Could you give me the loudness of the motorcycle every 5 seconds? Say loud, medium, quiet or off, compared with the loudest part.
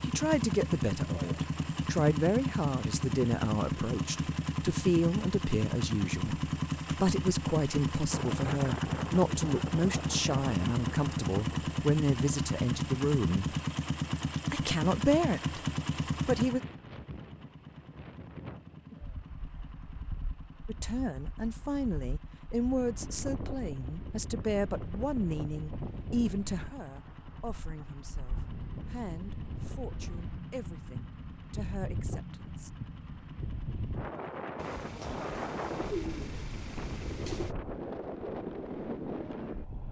loud, loud, loud, medium, quiet, quiet, quiet, quiet.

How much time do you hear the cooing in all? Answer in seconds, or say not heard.
3 s.